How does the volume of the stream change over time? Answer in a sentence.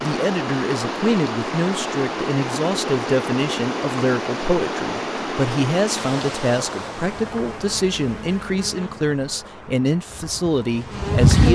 The volume of the stream goes down.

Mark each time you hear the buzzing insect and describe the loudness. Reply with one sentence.
The buzzing insect can be heard from 6.8 to 11.4 s, getting quieter then louder.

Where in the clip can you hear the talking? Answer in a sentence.
The talking can be heard from 0.0 to 11.4 s.